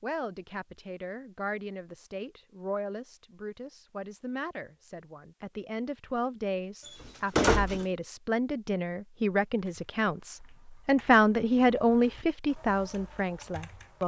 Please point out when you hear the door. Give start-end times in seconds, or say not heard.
6.8-7.8.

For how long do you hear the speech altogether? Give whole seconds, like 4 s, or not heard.
14 s.